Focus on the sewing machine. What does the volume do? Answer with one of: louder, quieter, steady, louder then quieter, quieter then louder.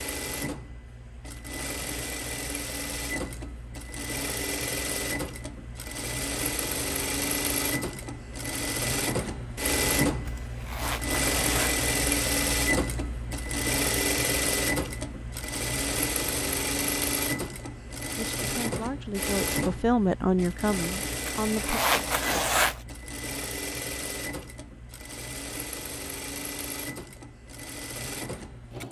louder then quieter.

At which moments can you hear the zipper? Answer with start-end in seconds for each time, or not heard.
10.2-11.8, 21.2-22.8.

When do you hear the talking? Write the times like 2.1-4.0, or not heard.
18.1-21.8.